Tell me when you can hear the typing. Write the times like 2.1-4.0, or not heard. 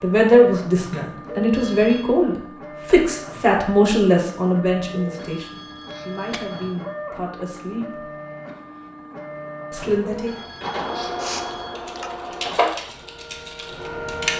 10.9-14.3.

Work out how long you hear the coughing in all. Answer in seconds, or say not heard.
2 s.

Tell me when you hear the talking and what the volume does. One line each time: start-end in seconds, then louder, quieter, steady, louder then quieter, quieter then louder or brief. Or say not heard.
0.0-8.0 quieter
9.7-10.3 brief.